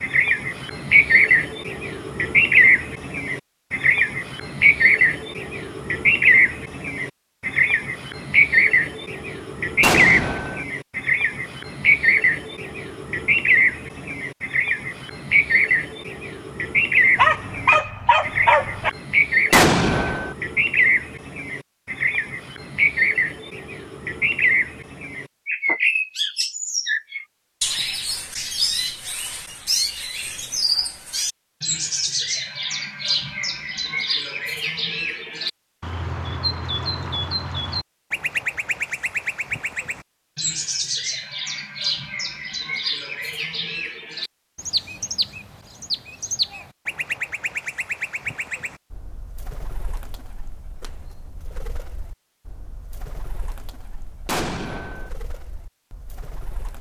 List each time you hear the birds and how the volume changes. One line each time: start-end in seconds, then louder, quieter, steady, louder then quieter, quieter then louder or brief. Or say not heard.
0.0-56.7 quieter.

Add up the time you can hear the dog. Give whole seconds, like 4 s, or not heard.
2 s.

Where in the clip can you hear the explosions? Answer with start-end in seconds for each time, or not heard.
9.8-10.7, 19.5-20.4, 54.2-55.1.